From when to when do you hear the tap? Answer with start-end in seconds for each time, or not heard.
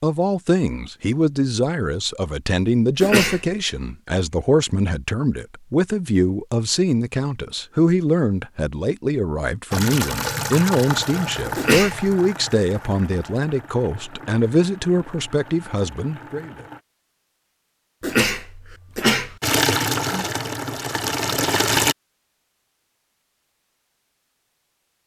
9.7-16.9, 19.4-21.9.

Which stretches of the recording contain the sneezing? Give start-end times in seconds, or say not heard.
3.0-3.5, 11.6-12.1, 18.0-19.4.